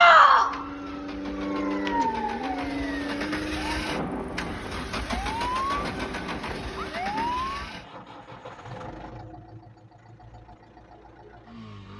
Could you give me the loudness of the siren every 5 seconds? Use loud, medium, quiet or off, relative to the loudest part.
loud, medium, off.